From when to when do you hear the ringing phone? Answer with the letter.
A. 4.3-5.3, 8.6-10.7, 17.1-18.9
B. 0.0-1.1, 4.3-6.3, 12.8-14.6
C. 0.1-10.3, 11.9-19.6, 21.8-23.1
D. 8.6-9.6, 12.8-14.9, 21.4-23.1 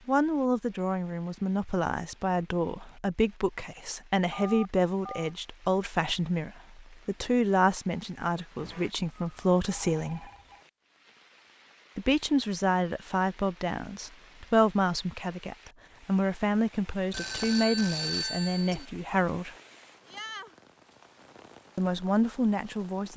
A.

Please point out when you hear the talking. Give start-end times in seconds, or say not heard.
0.1-10.3, 11.9-19.6, 21.8-23.1.